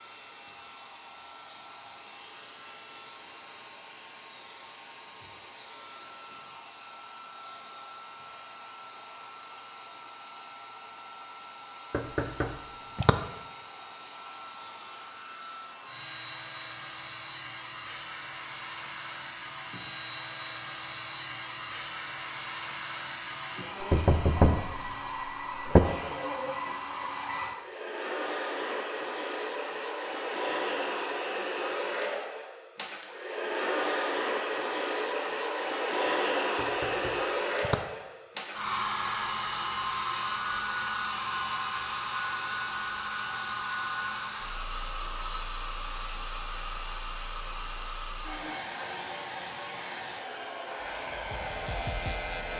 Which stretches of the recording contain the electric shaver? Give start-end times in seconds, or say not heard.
50.8-52.5.